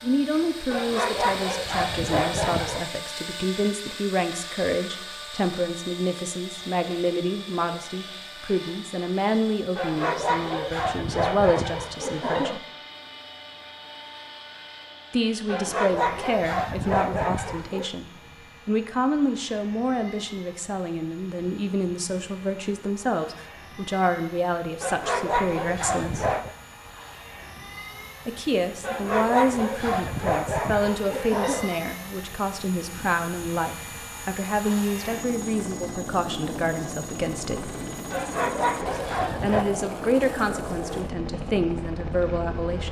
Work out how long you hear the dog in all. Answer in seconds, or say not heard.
14 s.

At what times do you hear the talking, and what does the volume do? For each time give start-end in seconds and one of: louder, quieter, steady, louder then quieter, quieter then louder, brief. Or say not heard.
0.0-12.6 steady
15.1-26.3 steady
28.2-37.7 steady
38.8-42.8 quieter then louder.